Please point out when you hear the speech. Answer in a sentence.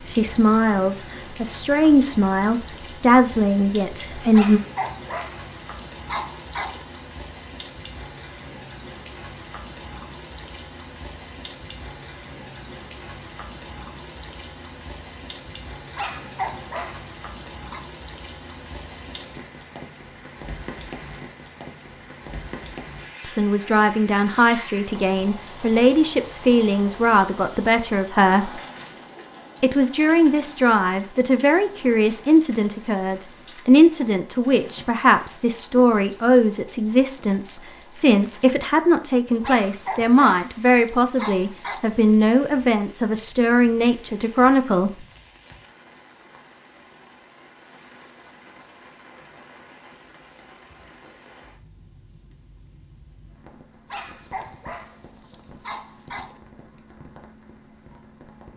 The speech can be heard from 0.0 to 4.6 s, from 23.2 to 28.6 s and from 29.6 to 45.0 s.